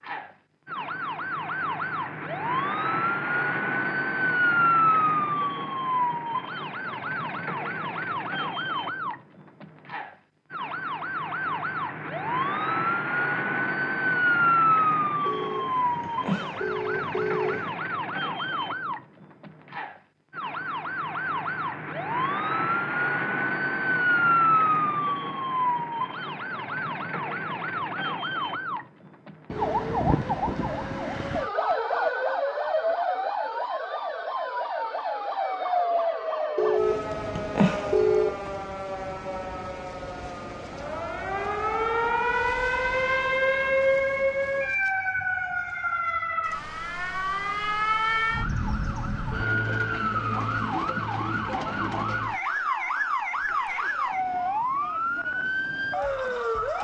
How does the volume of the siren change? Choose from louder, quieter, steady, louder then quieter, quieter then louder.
steady.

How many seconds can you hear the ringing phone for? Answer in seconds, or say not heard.
4 s.